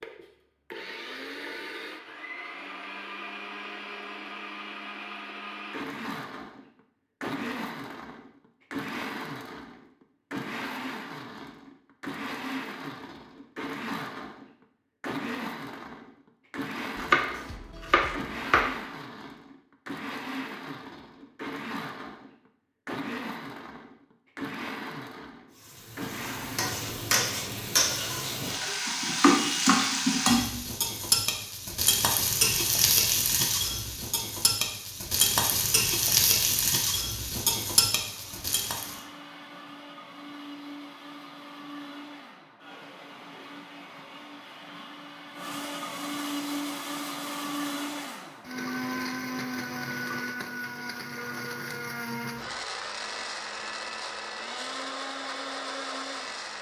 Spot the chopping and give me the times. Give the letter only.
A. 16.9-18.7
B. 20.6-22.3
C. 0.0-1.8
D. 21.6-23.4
A.